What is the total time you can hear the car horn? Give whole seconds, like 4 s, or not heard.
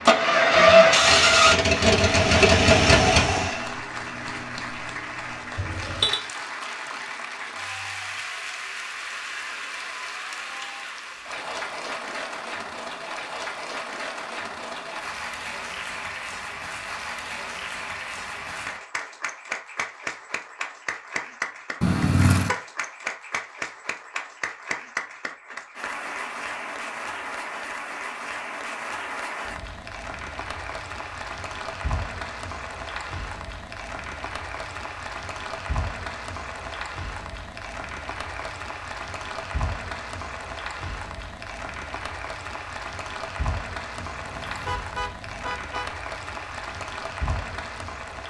3 s.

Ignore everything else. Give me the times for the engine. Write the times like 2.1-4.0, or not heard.
0.0-3.7.